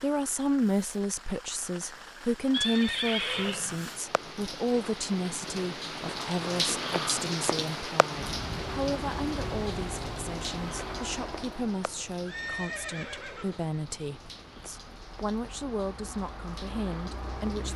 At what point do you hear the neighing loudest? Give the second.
3 s.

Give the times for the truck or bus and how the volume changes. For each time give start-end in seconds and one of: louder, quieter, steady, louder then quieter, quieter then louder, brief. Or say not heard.
8.1-17.7 quieter then louder.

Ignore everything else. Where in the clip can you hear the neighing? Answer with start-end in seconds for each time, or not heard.
2.5-3.7, 12.2-13.7.